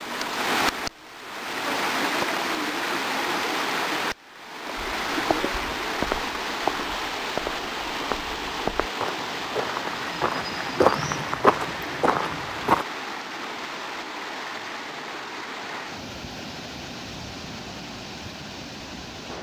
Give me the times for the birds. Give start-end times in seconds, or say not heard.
not heard.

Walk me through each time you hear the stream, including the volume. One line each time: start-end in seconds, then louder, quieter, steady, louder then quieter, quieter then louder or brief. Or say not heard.
0.0-19.3 quieter.